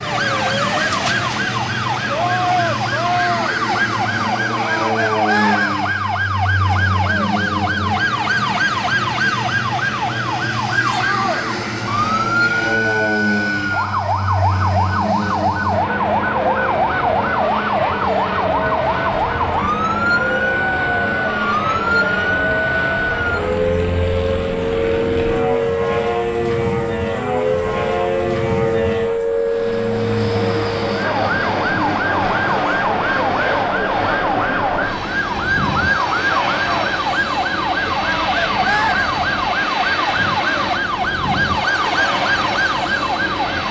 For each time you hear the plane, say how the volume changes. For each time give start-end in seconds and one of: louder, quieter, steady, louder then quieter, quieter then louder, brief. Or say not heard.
0.0-43.6 steady.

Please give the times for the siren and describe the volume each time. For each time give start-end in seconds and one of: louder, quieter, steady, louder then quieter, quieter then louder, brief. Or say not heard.
0.0-43.6 steady.